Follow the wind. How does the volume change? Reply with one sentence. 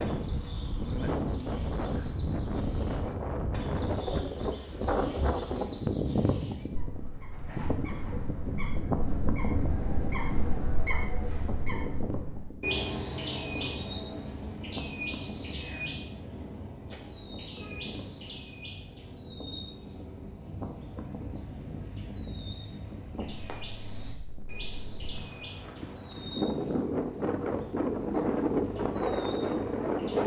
The loudness of the wind goes down, then up.